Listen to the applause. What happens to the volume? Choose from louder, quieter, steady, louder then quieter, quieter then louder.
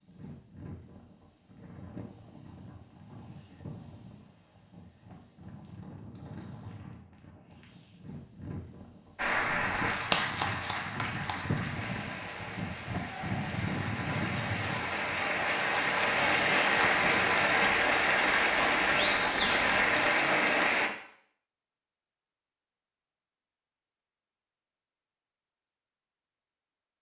quieter then louder.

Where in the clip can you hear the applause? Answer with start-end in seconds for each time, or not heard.
9.2-20.9.